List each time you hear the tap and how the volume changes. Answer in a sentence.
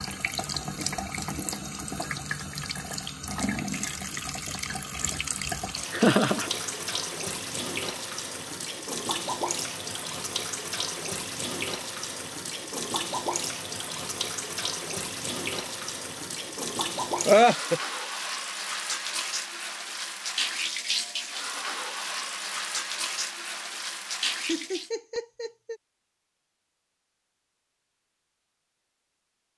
You can hear the tap from 0.0 to 24.9 s, at a steady volume.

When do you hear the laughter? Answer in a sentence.
The laughter can be heard from 5.9 to 6.5 s, from 17.2 to 17.8 s and from 24.4 to 25.8 s.